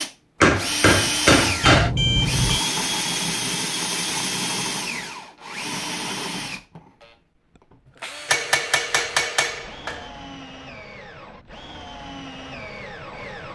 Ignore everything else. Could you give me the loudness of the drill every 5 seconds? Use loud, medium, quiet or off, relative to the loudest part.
loud, medium, quiet.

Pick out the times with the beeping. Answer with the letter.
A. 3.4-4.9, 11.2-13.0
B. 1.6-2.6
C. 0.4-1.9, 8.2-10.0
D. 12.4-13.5
B.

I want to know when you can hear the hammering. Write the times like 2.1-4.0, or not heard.
0.4-1.9, 8.2-10.0.